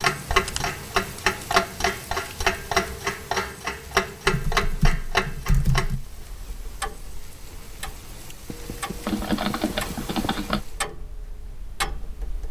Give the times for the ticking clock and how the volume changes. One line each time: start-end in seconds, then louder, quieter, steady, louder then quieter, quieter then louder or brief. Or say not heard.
0.0-12.4 quieter then louder.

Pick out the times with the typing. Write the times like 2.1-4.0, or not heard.
0.5-1.4, 4.2-6.0, 8.5-10.6.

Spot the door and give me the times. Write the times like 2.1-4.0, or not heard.
not heard.